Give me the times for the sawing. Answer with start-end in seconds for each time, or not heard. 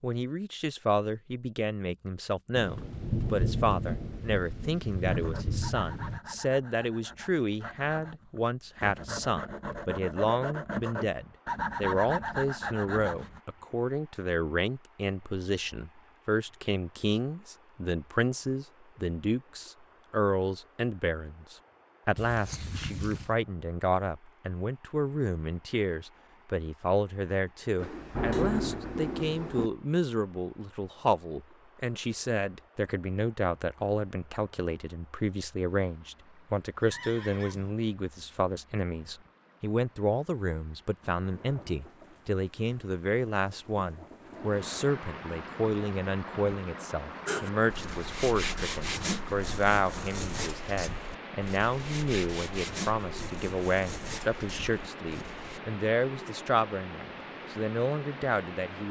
5.0-13.4, 47.2-55.6.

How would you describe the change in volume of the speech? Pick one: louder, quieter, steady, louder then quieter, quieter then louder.
steady.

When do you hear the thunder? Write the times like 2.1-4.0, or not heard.
2.5-6.2, 27.8-29.7, 41.0-44.9.